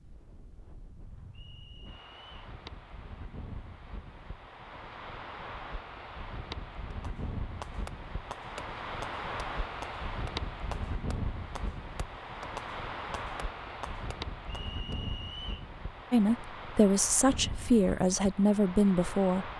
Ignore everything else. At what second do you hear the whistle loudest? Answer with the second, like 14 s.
15 s.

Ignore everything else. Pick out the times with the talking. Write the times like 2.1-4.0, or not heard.
16.1-19.5.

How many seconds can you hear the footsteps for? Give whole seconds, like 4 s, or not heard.
not heard.